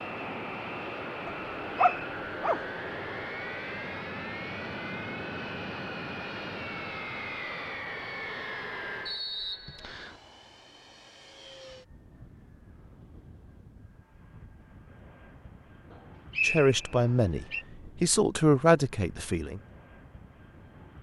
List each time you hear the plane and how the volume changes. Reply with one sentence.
You can hear the plane from 0.0 to 20.9 s, getting quieter.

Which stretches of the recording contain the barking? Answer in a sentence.
You can hear the barking from 1.2 to 2.6 s.